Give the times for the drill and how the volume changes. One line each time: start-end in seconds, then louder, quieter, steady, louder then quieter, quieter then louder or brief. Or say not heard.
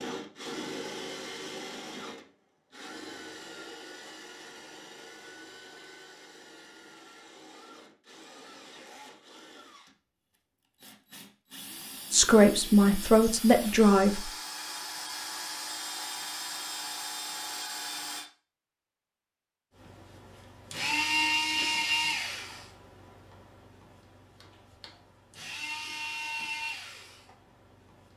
0.0-18.2 quieter then louder
19.8-28.1 quieter then louder.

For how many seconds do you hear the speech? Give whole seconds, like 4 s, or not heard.
2 s.